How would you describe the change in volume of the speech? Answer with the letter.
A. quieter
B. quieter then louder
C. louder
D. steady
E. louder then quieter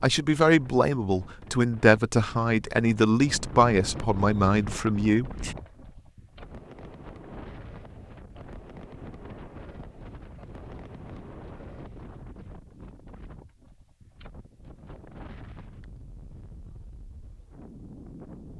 D.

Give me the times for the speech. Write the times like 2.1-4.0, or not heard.
0.0-5.5.